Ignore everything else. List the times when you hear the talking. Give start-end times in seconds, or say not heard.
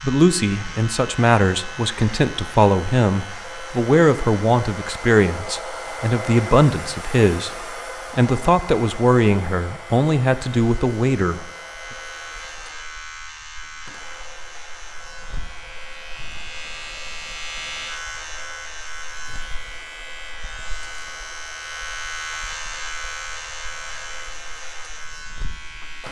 0.0-11.5.